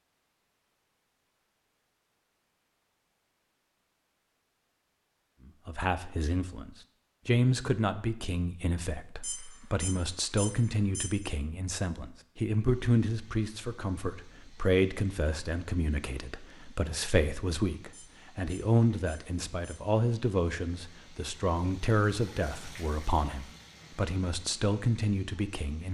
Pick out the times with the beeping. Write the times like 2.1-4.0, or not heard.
9.2-11.2, 17.9-19.8.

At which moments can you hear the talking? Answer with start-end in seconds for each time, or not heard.
5.7-25.8.